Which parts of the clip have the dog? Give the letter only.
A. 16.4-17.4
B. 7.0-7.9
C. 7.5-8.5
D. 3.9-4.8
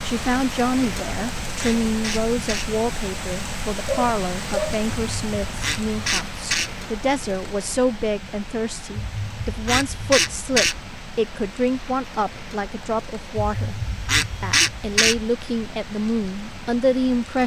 D.